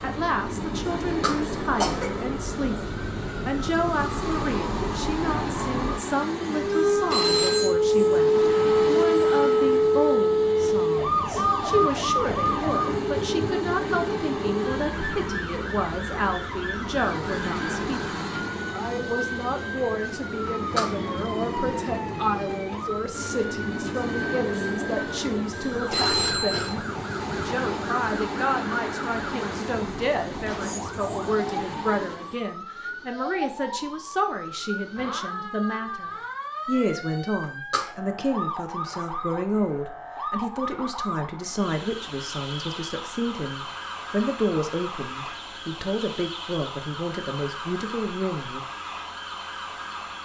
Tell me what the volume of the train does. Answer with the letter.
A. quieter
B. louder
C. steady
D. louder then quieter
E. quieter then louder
C.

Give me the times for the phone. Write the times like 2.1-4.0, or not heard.
6.7-7.8, 25.5-26.8.